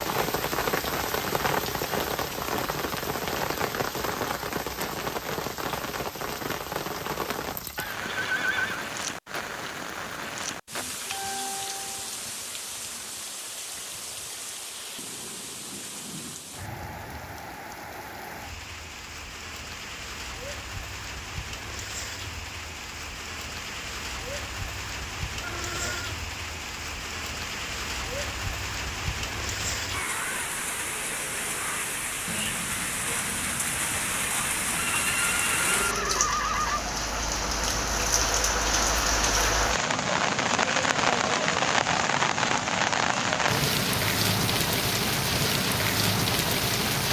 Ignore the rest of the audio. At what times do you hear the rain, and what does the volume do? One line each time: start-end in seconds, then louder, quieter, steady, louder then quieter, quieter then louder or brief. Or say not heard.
0.0-47.0 quieter then louder.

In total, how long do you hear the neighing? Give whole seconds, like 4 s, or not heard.
4 s.